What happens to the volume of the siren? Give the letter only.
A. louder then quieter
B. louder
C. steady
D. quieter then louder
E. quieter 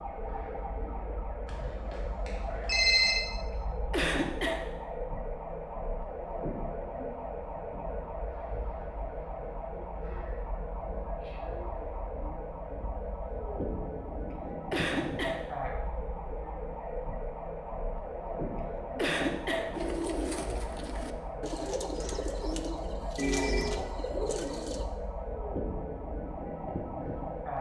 C.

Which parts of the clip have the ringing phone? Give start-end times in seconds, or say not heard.
1.4-3.1, 23.1-23.8.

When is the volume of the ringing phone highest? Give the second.
3 s.